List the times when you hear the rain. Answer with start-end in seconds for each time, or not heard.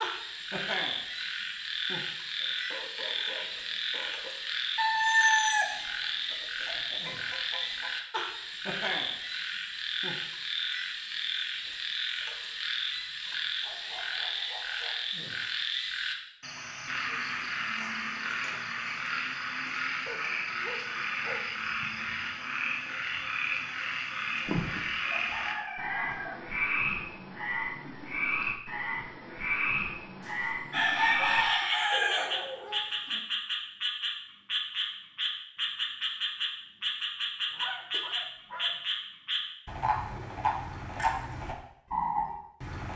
not heard.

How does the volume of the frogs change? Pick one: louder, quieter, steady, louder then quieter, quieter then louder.
steady.